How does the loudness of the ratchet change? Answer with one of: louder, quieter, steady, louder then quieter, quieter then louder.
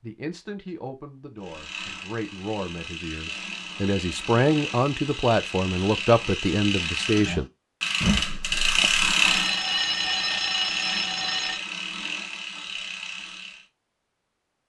louder then quieter.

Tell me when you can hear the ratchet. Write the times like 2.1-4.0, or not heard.
1.4-13.7.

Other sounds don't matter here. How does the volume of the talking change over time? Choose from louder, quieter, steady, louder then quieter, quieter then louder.
louder.